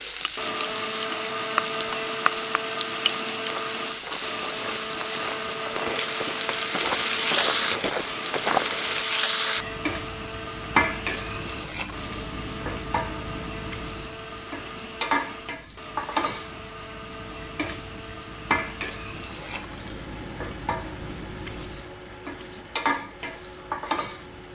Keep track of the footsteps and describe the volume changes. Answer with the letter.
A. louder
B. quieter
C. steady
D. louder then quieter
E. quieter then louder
A.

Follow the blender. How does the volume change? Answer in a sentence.
The volume of the blender goes down.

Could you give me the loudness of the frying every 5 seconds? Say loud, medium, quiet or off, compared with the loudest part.
loud, loud, loud, loud, medium.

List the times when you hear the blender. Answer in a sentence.
You can hear the blender from 0.1 to 24.5 s.